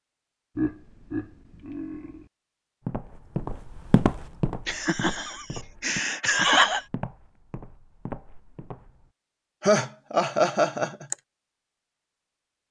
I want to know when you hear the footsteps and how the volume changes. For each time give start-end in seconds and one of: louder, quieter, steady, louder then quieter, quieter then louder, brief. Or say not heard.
2.9-9.1 quieter.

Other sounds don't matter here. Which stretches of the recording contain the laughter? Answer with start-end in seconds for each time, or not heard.
0.6-2.2, 4.7-6.8, 9.6-11.2.